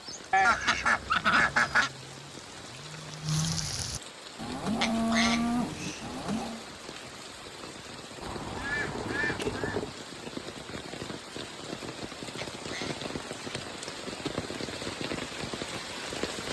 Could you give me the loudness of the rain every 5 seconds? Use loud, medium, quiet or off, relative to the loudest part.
medium, medium, loud, loud.